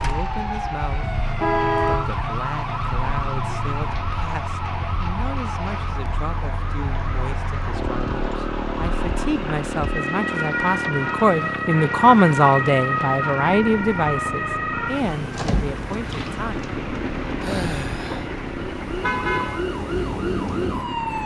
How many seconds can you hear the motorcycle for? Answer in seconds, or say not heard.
21 s.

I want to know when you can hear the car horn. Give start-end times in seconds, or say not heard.
1.4-2.1, 19.0-19.6.